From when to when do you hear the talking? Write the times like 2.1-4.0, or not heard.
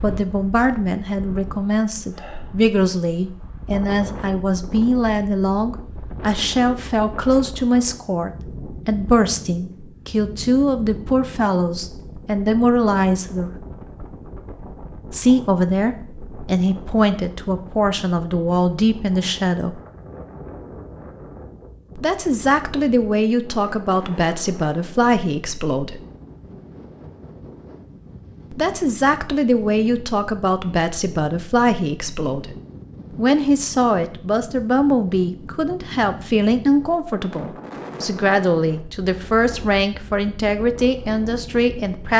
0.0-13.5, 15.1-19.8, 21.9-26.0, 28.5-32.5, 33.1-42.1.